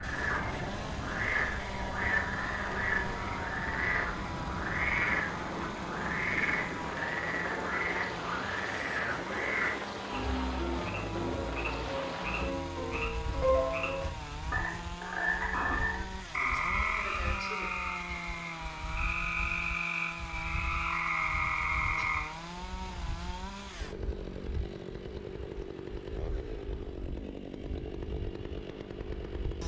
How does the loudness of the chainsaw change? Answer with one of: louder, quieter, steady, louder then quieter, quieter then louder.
steady.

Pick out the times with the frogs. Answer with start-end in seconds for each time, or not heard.
0.0-22.3.